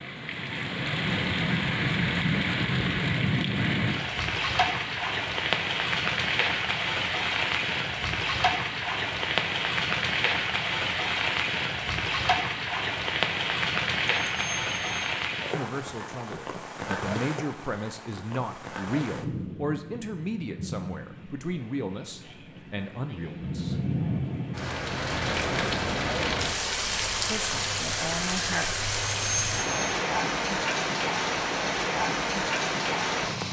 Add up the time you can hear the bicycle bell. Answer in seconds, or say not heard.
2 s.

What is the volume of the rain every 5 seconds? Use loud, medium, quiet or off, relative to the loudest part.
loud, loud, loud, medium, medium, loud, loud.